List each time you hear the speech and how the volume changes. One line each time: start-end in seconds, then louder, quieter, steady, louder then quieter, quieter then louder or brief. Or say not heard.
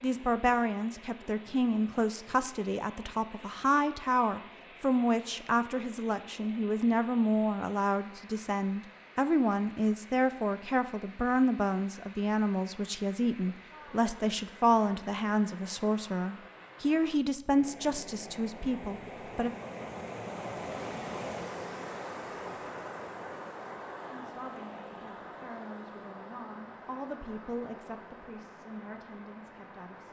0.0-19.5 steady
24.1-30.0 louder then quieter.